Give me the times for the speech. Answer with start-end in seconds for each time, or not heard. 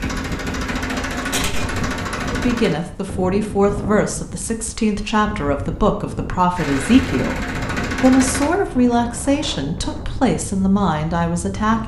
2.3-11.8.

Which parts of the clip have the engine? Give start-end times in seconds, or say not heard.
0.0-2.8, 6.5-8.5.